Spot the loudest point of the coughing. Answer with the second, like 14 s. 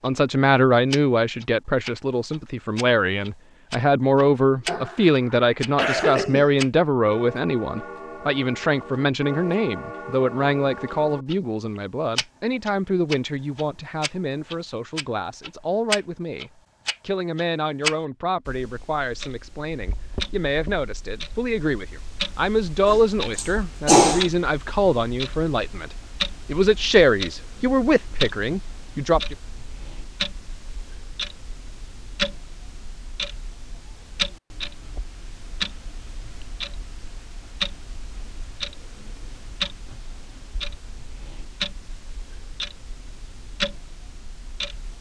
24 s.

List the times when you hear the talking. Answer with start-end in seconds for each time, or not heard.
0.0-29.4.